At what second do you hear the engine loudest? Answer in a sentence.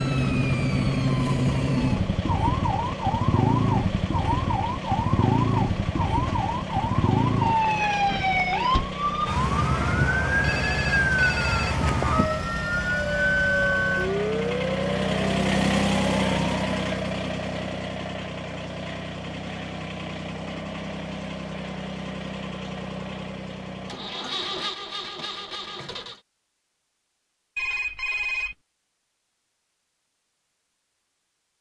The volume of the engine peaks at 16 seconds.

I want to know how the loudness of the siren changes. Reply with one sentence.
The volume of the siren stays about the same.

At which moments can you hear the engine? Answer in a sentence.
The engine can be heard from 0.0 to 26.2 s.